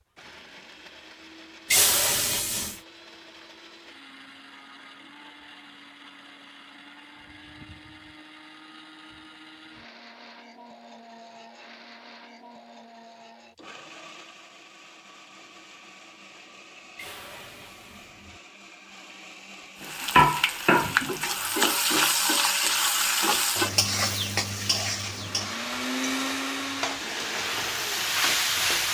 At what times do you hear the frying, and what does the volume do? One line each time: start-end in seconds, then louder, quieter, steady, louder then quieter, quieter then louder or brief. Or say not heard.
19.8-28.8 quieter then louder.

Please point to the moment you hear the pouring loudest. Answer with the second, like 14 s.
2 s.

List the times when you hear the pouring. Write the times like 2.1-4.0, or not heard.
1.7-2.8, 16.9-18.4.